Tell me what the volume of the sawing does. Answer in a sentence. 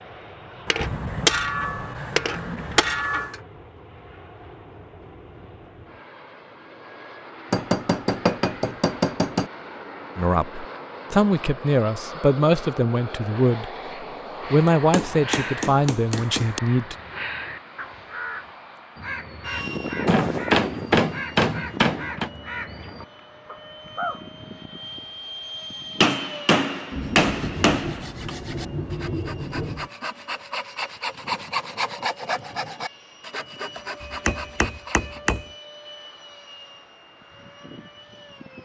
The loudness of the sawing goes up, then down.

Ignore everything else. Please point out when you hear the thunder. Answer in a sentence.
You can hear the thunder from 0.8 to 3.1 s and from 26.9 to 29.9 s.